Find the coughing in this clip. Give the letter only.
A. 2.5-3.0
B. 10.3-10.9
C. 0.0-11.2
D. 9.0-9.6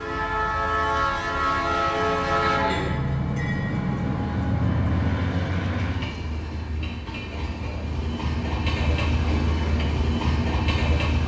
A.